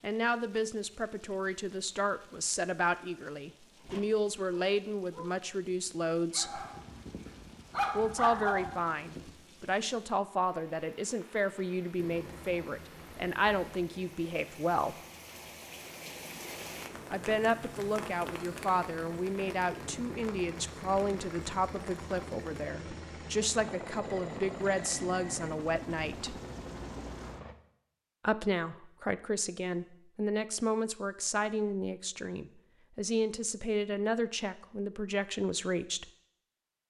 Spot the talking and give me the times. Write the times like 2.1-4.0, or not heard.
0.0-6.6, 8.0-14.9, 17.1-26.4, 28.2-36.1.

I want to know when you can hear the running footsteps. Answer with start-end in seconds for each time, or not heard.
not heard.